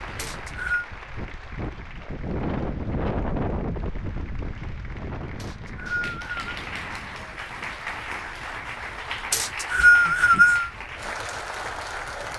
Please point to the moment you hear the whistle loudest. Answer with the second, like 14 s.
10 s.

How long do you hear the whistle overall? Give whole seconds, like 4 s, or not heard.
3 s.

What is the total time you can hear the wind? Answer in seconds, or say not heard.
12 s.